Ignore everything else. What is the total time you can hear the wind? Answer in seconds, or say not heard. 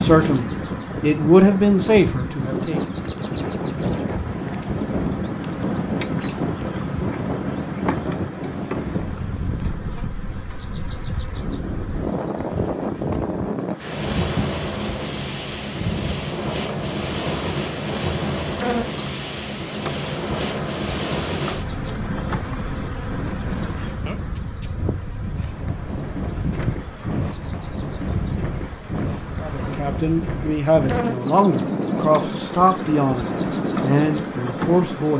35 s.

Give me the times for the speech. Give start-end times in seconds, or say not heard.
0.0-2.8, 29.4-35.1.